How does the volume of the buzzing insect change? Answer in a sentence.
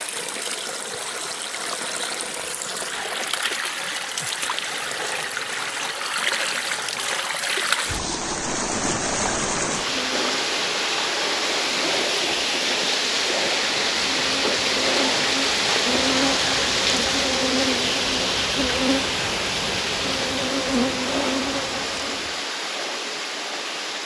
The loudness of the buzzing insect goes up.